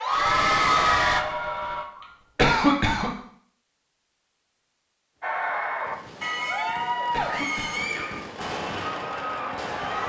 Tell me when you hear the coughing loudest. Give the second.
3 s.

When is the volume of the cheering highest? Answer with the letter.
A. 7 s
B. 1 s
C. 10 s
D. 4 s
B.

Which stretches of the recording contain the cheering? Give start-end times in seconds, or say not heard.
0.0-1.9, 5.2-10.0.